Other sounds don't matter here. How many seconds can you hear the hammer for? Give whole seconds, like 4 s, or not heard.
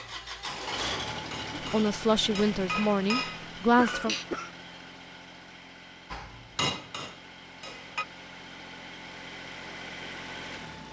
6 s.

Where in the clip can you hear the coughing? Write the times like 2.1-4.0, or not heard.
3.6-4.5.